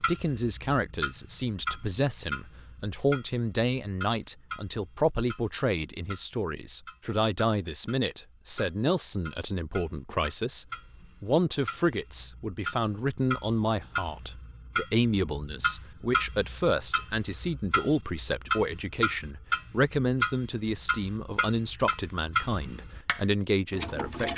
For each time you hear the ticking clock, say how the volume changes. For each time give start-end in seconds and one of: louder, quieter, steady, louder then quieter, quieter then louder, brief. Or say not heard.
0.0-24.3 quieter then louder.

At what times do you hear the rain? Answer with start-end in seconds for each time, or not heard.
not heard.